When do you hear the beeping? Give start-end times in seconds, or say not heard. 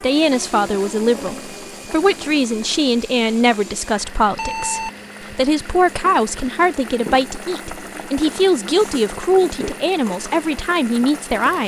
4.3-5.3.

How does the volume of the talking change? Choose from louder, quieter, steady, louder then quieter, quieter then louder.
steady.